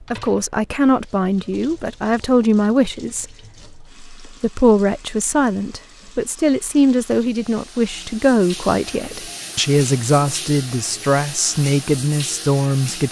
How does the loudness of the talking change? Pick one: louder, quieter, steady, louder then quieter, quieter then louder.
steady.